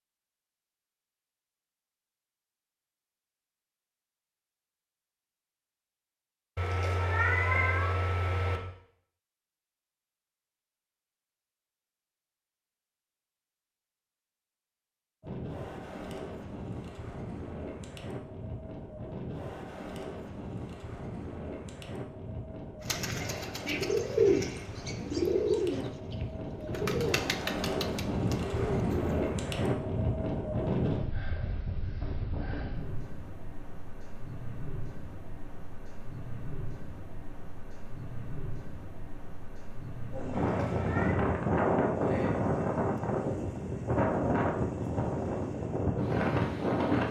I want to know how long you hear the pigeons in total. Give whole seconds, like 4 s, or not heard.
6 s.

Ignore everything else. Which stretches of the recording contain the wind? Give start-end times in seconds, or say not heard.
15.2-47.0.